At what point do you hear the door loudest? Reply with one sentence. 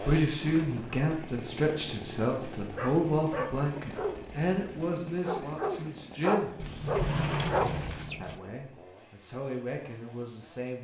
The loudest moment of the door is at 7 seconds.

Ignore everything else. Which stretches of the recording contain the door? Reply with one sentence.
You can hear the door from 0.4 to 1.1 s and from 6.5 to 8.4 s.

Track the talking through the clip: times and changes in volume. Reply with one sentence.
You can hear the talking from 0.0 to 6.5 s, getting quieter; and briefly from 8.2 to 10.7 s.